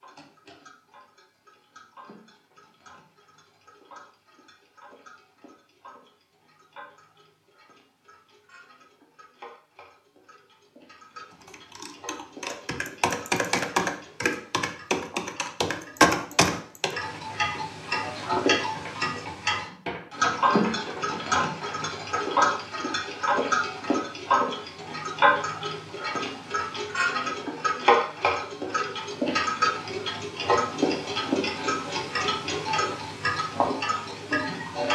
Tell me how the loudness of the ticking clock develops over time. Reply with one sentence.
The volume of the ticking clock goes up.